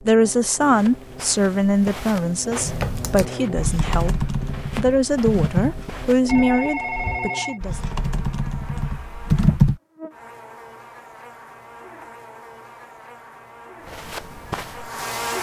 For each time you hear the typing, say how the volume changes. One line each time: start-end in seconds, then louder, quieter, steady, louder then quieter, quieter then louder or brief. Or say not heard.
2.6-9.8 quieter then louder.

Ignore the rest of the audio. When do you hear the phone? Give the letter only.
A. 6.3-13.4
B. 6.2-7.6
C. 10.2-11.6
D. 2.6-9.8
B.